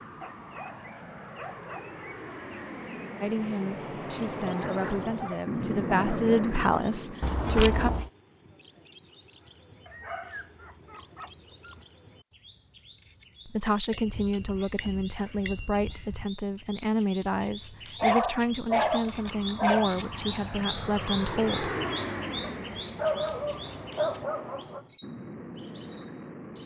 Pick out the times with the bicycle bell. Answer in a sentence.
You can hear the bicycle bell from 7.2 to 8.1 s and from 13.9 to 16.2 s.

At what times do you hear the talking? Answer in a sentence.
You can hear the talking from 3.2 to 7.9 s and from 13.4 to 21.8 s.